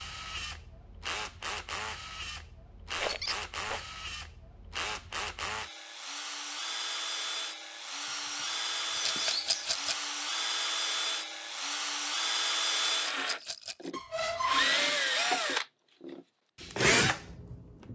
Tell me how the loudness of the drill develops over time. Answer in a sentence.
The volume of the drill goes up.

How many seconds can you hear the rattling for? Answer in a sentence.
The rattling can be heard for 3 seconds in total.